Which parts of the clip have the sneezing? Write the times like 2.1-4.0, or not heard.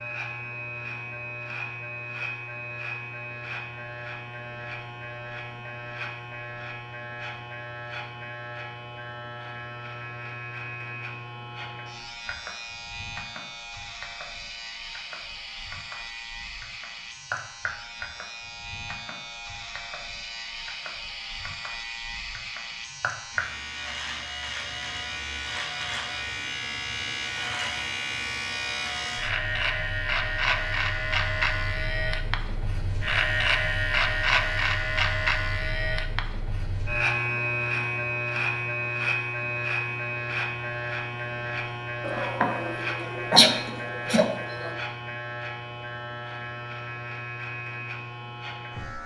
42.0-44.7.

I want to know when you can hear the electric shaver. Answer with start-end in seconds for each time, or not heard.
0.0-49.0.